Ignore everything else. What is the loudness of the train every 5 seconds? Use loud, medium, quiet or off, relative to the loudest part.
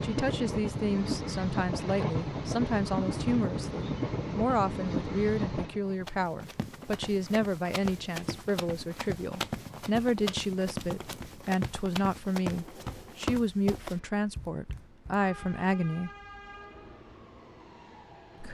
loud, medium, quiet, quiet.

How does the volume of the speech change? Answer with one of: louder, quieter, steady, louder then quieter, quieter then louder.
steady.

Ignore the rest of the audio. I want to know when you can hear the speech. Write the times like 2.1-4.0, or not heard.
0.0-16.1.